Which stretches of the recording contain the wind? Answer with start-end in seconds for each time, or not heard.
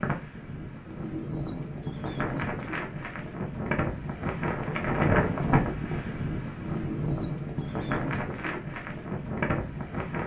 0.0-10.2.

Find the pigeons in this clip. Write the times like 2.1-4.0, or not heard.
0.8-2.9, 6.6-8.6.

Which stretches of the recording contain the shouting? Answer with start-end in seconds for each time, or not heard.
not heard.